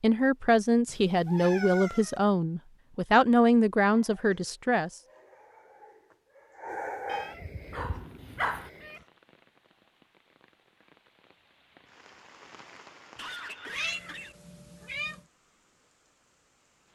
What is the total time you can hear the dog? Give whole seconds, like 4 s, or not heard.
5 s.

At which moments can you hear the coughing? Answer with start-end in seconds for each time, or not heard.
13.2-14.3.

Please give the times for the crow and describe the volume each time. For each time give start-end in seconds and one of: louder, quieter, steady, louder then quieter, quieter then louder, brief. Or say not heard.
not heard.